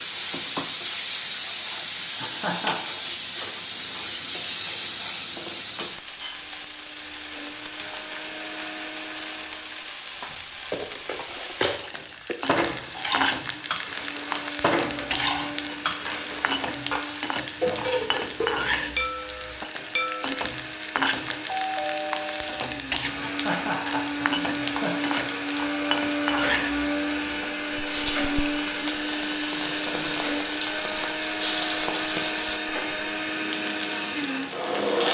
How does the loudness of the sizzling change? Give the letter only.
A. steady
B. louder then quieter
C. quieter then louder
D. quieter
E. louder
A.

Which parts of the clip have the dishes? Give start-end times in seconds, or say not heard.
10.3-20.4.